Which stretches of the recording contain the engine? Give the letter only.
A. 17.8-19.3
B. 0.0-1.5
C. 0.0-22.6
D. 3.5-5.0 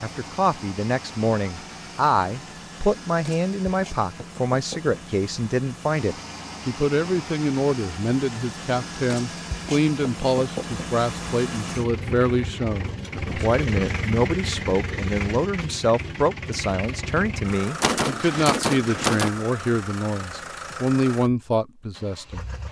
C.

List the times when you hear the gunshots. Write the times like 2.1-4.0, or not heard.
17.8-19.3.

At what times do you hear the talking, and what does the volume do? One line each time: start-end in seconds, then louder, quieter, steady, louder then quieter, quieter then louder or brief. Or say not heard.
0.0-22.4 steady.